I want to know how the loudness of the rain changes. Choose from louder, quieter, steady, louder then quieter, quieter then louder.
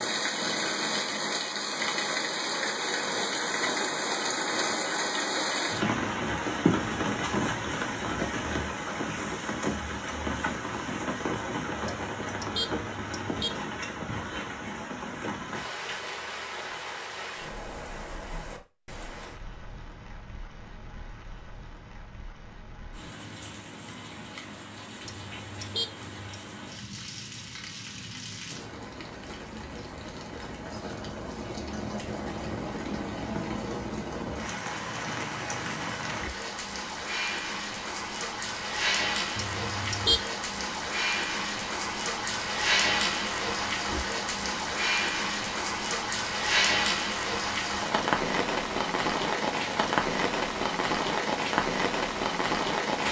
quieter then louder.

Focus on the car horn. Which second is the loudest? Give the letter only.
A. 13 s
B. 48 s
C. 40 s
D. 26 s
C.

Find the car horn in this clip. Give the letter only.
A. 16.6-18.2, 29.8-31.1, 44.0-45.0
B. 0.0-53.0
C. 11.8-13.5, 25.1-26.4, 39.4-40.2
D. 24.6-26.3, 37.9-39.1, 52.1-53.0
C.